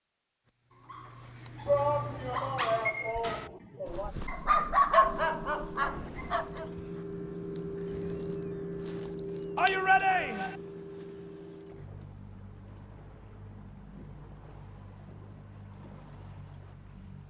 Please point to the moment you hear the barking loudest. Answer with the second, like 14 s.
5 s.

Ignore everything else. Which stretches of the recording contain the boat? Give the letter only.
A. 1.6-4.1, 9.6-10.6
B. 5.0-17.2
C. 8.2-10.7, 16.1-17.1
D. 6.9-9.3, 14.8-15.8
B.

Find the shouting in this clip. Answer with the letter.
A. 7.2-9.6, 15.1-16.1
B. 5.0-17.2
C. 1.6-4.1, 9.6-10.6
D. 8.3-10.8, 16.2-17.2
C.